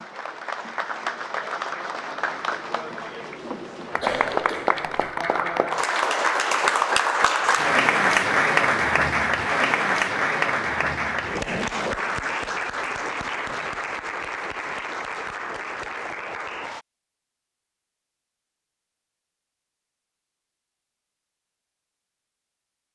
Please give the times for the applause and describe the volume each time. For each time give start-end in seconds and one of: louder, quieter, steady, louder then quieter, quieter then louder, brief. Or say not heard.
0.0-16.9 louder then quieter.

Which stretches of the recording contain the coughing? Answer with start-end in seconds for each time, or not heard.
4.0-5.1.